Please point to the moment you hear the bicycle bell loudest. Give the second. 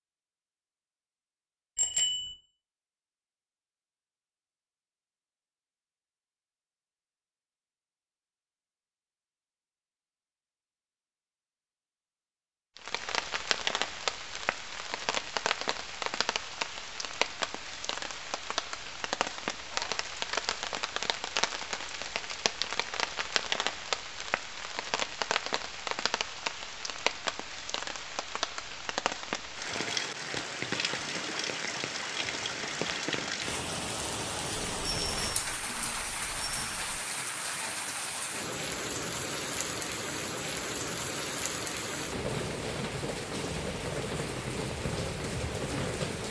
2 s.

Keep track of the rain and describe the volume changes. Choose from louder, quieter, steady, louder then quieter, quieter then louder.
steady.